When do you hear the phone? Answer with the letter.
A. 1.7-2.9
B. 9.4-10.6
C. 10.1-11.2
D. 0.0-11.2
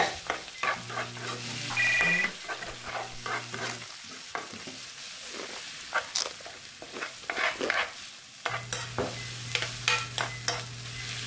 A.